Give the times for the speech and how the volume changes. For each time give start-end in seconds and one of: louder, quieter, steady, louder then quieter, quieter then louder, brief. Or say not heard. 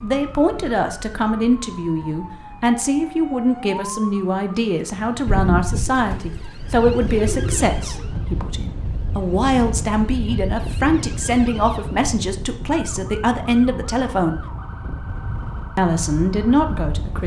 0.0-14.4 steady
15.8-17.2 brief.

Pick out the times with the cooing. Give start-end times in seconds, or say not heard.
5.2-8.1.